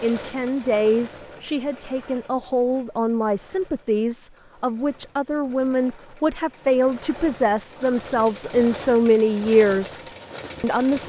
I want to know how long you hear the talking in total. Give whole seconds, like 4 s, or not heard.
11 s.